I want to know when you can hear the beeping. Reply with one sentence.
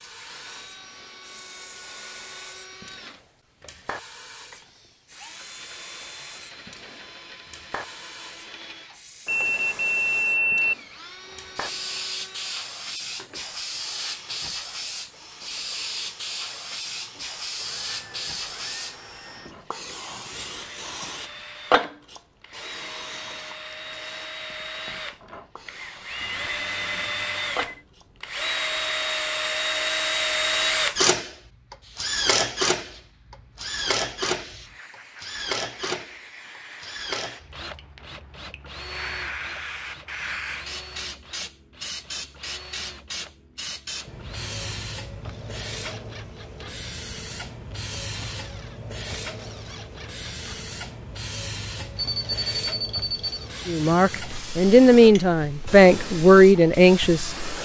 The beeping can be heard from 9.2 to 10.8 s, from 26.2 to 27.9 s and from 52.0 to 53.5 s.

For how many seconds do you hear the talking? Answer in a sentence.
The talking can be heard for 4 seconds in total.